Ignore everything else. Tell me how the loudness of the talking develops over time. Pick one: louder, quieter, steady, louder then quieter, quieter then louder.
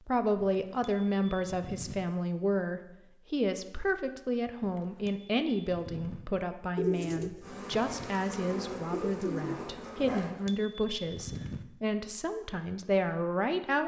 steady.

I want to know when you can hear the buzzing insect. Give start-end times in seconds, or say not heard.
7.4-10.3.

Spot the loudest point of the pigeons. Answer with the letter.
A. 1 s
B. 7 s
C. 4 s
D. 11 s
B.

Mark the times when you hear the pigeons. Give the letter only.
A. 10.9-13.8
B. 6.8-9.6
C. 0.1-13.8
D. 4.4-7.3
B.